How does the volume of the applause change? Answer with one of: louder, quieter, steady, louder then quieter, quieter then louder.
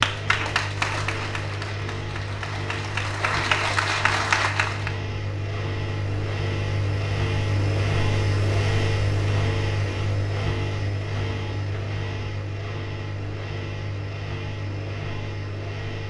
quieter then louder.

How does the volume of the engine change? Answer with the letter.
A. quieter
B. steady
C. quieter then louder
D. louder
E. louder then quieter
E.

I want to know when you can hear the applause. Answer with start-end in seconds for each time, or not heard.
0.0-5.0.